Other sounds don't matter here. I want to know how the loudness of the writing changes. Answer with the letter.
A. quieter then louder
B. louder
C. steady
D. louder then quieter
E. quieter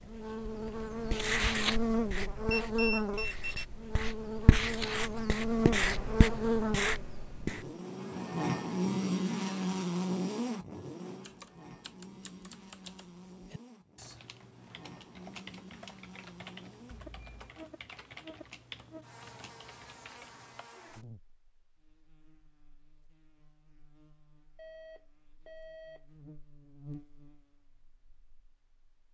A.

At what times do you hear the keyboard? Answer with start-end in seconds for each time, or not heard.
11.2-20.7.